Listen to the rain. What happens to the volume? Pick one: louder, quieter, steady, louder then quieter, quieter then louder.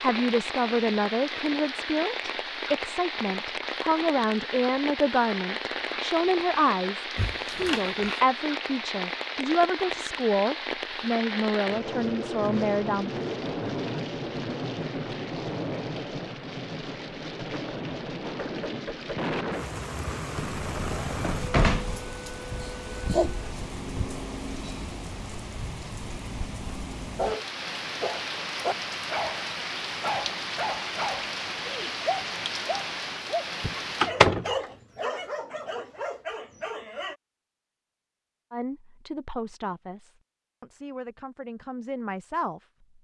steady.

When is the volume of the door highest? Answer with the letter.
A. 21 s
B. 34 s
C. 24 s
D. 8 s
B.